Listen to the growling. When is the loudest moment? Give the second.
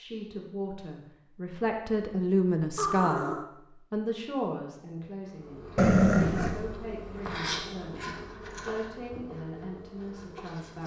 6 s.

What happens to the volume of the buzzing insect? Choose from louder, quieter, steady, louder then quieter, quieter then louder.
louder then quieter.